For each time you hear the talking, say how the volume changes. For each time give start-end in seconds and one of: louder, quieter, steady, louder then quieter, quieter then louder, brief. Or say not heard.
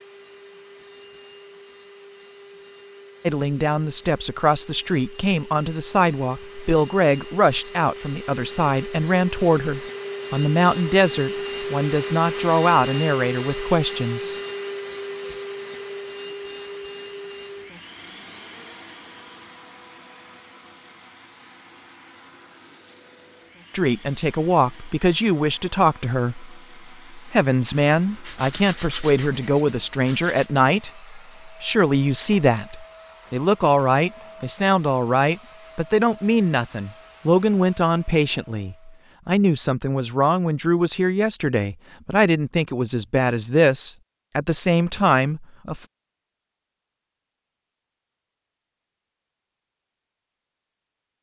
3.2-14.3 steady
23.8-45.9 steady.